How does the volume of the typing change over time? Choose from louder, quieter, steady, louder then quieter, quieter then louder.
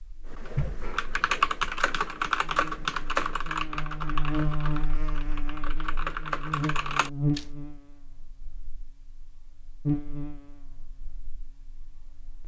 quieter then louder.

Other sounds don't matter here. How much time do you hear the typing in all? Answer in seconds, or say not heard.
7 s.